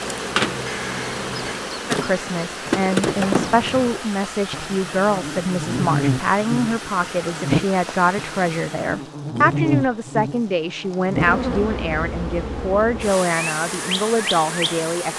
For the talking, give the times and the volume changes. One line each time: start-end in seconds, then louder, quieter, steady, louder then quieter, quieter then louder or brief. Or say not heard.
1.9-15.1 steady.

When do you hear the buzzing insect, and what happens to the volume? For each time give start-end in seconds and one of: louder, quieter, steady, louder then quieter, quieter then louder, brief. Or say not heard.
0.0-15.1 steady.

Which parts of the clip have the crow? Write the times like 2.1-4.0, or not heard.
0.0-1.7.